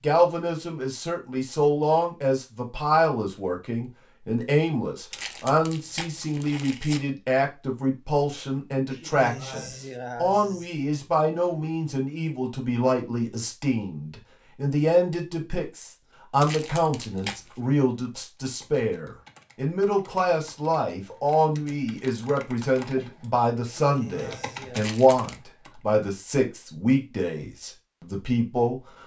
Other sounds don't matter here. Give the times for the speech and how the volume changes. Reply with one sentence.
The speech can be heard from 0.0 to 28.8 s, at a steady volume.